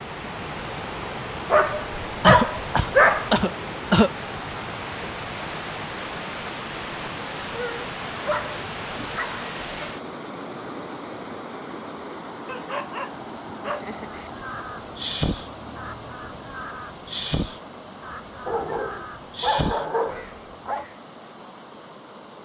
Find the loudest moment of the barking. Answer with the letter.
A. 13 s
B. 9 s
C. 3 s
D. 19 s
C.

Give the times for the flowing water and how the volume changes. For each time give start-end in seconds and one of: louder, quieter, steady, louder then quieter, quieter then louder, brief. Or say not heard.
0.0-22.4 quieter.